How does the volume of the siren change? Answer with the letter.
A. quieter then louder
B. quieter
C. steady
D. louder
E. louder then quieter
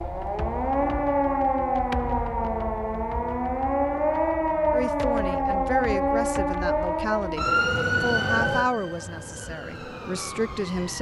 B.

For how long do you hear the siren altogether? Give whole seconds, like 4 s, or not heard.
11 s.